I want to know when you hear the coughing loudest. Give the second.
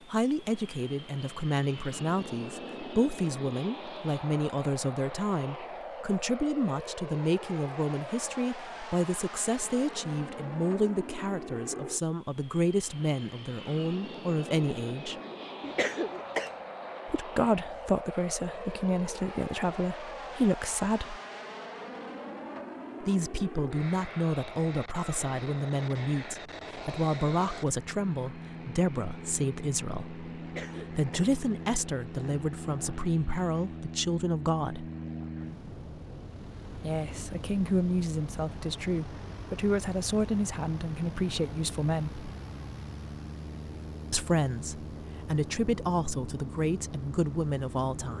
16 s.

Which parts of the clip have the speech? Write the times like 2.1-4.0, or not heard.
0.1-15.2, 17.1-21.2, 23.0-34.9, 36.8-42.2, 44.1-48.1.